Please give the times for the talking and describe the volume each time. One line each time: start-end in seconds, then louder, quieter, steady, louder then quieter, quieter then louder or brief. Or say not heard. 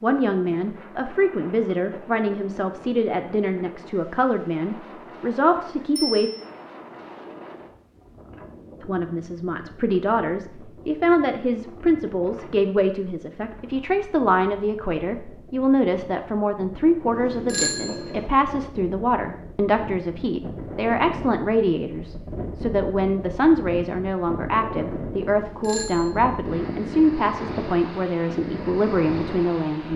0.0-6.3 steady
8.8-29.9 steady.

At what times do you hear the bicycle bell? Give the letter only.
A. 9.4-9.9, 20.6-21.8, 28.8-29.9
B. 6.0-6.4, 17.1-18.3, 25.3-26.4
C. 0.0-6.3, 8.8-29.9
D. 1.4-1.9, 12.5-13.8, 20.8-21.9
B.